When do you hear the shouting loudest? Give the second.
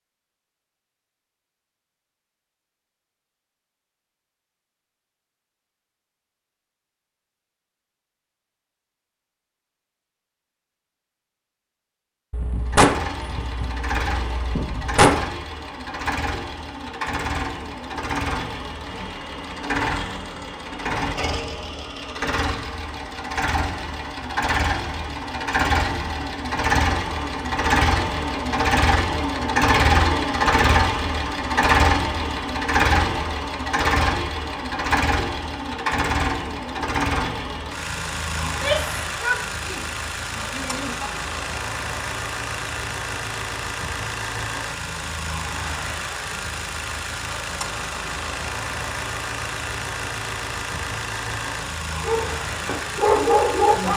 39 s.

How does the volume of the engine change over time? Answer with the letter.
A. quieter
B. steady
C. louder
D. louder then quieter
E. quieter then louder
D.